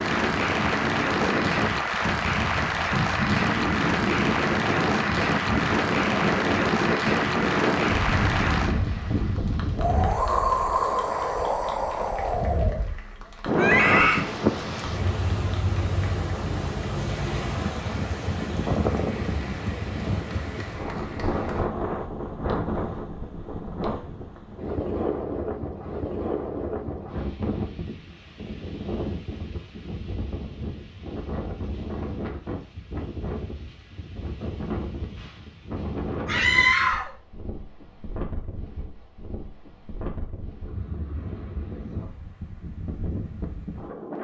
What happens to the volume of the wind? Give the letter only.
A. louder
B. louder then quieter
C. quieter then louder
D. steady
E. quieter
E.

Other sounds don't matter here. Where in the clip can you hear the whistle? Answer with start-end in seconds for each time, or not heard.
not heard.